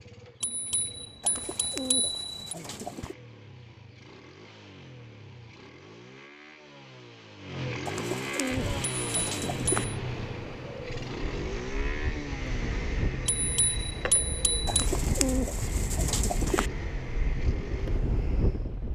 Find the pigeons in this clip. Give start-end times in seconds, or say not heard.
1.2-3.1, 7.8-9.8, 14.7-16.7.